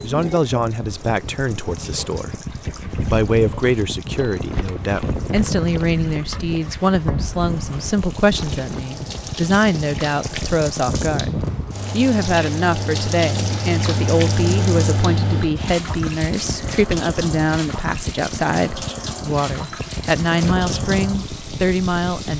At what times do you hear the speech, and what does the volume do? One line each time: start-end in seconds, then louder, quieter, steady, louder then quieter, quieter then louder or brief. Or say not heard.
0.0-2.4 brief
3.0-22.3 steady.